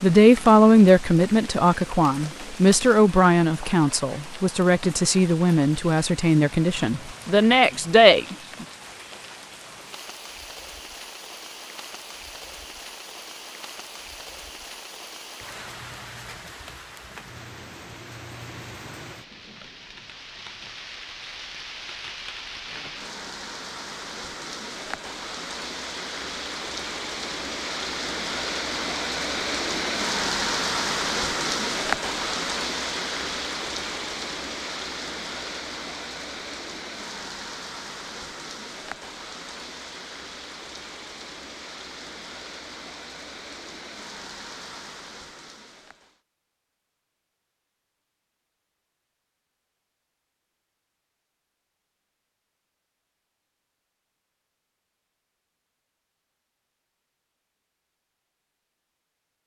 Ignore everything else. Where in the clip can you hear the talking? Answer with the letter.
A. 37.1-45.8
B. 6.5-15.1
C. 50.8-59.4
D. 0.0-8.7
D.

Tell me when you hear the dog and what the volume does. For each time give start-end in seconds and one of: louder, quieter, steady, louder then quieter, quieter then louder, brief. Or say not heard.
not heard.